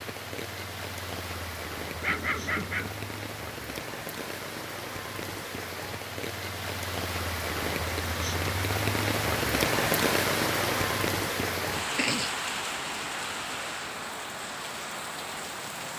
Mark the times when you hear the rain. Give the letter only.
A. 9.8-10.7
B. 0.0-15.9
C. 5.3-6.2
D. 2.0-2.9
B.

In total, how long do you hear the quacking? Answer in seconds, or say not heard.
not heard.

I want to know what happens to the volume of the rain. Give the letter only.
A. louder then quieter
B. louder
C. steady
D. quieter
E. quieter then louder
A.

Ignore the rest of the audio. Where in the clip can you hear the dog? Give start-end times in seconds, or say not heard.
2.0-2.9.